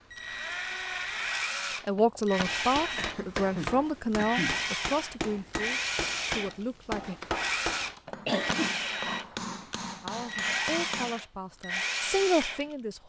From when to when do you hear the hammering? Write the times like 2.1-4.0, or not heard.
2.5-11.2.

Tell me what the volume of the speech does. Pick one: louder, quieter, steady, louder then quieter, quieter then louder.
quieter then louder.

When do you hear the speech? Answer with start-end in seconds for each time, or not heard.
1.9-7.2, 10.0-13.0.